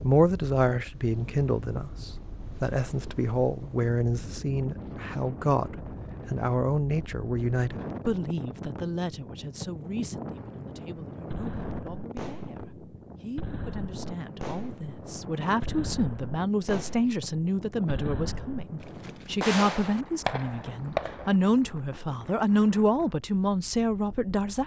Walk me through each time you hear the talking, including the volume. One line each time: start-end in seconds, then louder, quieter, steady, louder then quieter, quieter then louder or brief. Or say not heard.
0.0-24.6 quieter then louder.